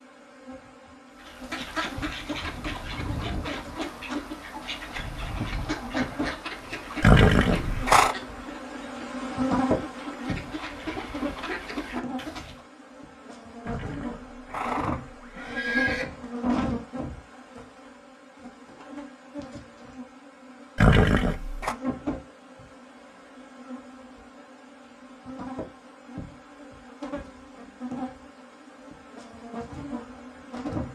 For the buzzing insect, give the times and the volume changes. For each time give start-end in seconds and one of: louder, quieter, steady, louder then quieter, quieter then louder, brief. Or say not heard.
0.0-30.9 louder then quieter.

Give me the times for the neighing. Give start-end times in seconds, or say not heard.
7.0-8.2, 13.7-16.1, 20.8-21.8.